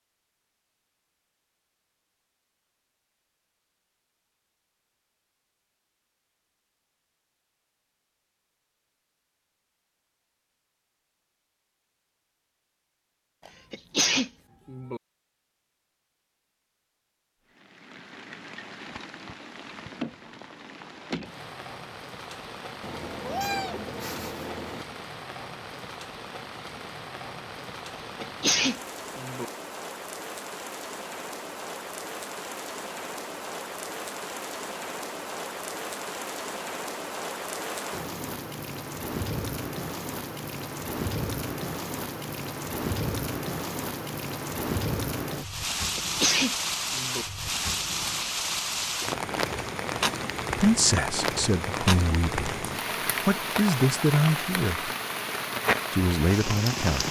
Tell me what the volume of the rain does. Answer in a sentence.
The loudness of the rain goes up.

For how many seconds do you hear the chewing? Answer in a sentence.
You can't hear the chewing here.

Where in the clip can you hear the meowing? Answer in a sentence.
You can hear the meowing from 22.8 to 24.9 s.